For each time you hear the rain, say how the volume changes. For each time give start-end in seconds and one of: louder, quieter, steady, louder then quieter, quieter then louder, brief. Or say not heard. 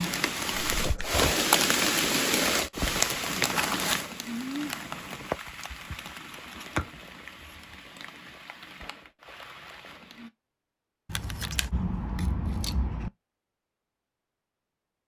0.0-10.3 quieter.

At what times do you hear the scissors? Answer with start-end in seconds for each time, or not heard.
0.8-1.2, 5.5-7.8, 11.1-13.1.